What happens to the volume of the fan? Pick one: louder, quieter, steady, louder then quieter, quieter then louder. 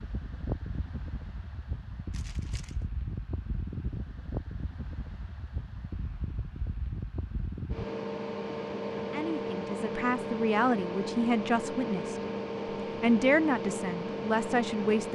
louder.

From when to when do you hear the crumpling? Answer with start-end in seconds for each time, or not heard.
2.1-2.9.